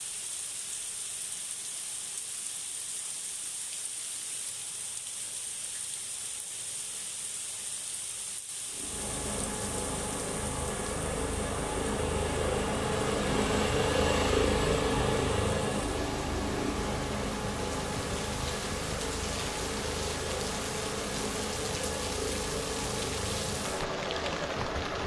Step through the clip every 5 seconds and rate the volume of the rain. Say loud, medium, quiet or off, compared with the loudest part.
medium, medium, medium, loud, loud.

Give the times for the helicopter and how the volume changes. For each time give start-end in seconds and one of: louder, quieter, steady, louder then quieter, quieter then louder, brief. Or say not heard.
8.7-25.0 louder then quieter.